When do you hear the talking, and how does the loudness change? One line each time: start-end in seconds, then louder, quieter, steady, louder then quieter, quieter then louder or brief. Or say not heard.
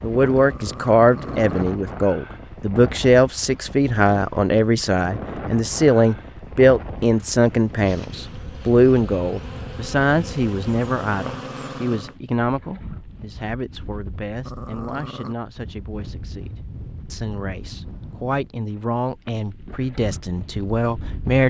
0.0-21.4 quieter then louder.